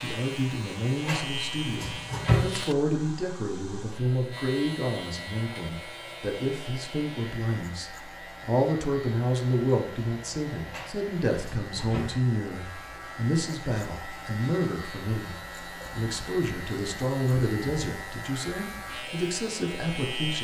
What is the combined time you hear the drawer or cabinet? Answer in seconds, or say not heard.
3 s.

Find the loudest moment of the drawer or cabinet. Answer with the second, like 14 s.
2 s.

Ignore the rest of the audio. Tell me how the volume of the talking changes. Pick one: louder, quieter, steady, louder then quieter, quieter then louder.
steady.